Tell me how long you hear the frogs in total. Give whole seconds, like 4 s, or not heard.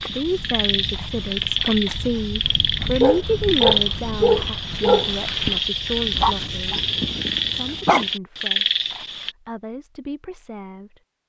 9 s.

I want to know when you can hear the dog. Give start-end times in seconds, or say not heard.
3.0-8.1.